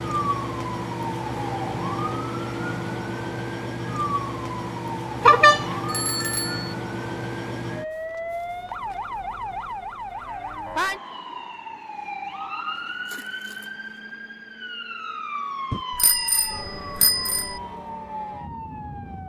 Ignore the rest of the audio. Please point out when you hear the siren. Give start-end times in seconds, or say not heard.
0.0-19.2.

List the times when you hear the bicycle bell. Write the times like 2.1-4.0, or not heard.
5.2-6.8, 15.7-17.6.